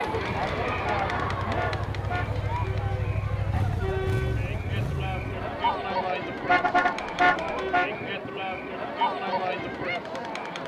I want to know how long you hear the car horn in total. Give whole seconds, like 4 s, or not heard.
3 s.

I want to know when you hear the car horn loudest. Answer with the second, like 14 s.
7 s.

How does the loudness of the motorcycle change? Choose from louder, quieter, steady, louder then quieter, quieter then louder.
louder.